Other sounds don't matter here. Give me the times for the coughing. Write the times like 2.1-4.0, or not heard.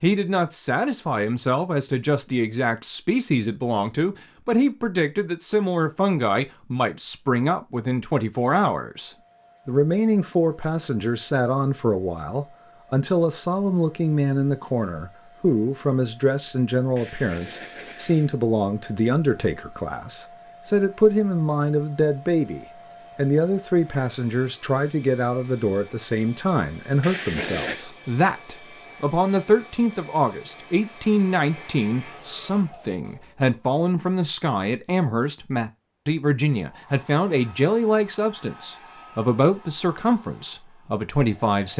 16.9-18.4, 27.0-27.9.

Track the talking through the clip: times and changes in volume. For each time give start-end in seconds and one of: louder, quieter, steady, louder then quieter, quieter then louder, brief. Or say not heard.
0.0-41.7 steady.